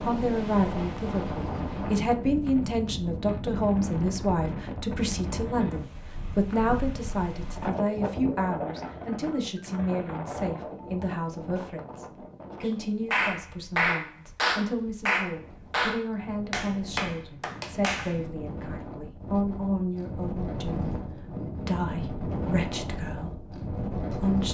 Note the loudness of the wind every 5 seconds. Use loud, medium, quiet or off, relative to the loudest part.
loud, loud, medium, medium, loud.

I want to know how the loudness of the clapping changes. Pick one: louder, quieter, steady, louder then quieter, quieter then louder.
quieter.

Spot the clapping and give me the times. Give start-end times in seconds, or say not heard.
12.7-18.2.